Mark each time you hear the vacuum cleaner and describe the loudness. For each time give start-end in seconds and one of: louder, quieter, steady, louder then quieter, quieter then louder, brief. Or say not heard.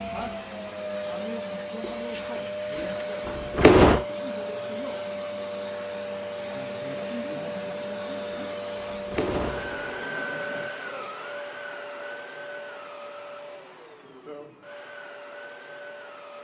0.0-16.3 quieter.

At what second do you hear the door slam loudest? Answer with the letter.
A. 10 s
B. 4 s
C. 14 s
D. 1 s
B.